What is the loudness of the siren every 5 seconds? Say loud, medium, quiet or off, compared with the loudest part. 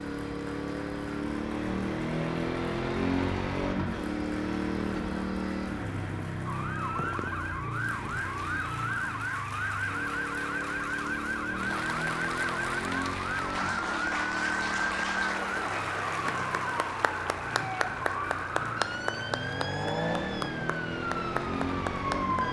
off, loud, loud, loud, loud.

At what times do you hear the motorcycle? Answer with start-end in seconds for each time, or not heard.
0.0-22.4.